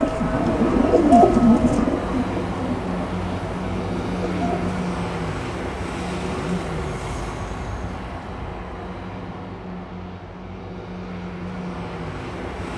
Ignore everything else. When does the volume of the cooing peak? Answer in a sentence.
The volume of the cooing peaks at 1 second.